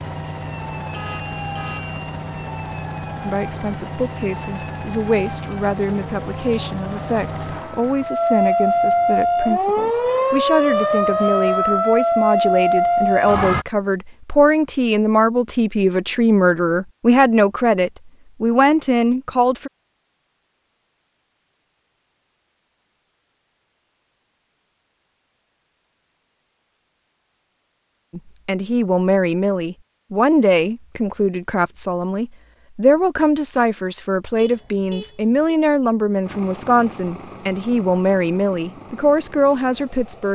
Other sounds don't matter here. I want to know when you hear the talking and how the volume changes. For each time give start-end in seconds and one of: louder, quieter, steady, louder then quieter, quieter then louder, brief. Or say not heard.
3.2-19.7 louder
28.1-40.3 steady.